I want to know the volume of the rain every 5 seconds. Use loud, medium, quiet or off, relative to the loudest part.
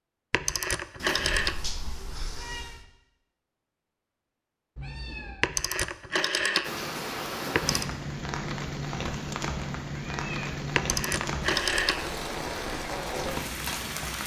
off, loud, loud.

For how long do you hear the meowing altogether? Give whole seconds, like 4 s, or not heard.
3 s.